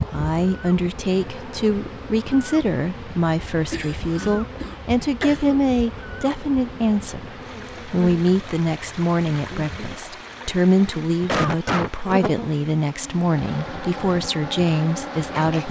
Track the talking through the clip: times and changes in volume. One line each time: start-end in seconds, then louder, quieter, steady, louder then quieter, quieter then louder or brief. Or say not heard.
0.0-15.6 steady.